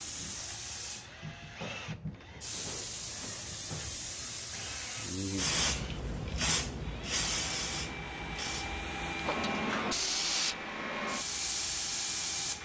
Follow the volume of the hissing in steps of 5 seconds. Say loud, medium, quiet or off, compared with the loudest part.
medium, loud, loud.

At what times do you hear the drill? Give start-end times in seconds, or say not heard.
0.0-12.5.